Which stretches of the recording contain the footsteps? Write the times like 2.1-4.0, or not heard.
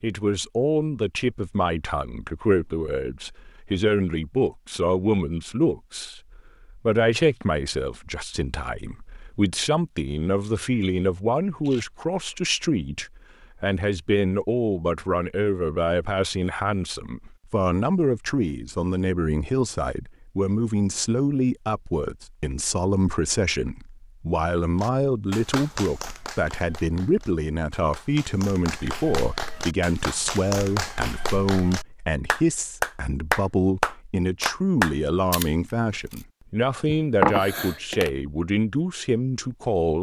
not heard.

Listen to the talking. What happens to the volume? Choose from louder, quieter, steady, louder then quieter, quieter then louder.
steady.